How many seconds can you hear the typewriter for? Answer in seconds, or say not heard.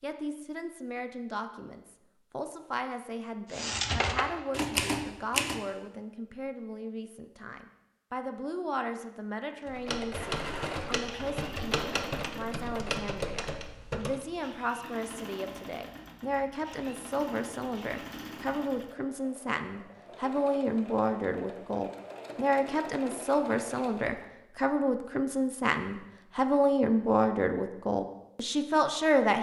7 s.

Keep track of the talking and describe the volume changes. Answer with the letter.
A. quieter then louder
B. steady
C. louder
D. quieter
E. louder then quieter
C.